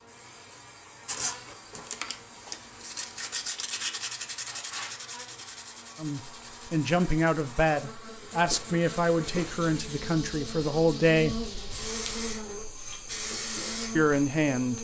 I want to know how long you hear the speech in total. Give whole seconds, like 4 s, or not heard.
6 s.